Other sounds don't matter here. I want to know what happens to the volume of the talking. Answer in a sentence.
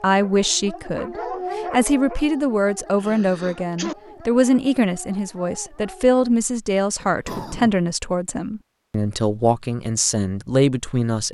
The volume of the talking stays about the same.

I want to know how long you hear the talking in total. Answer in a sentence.
You can hear the talking for 11 seconds altogether.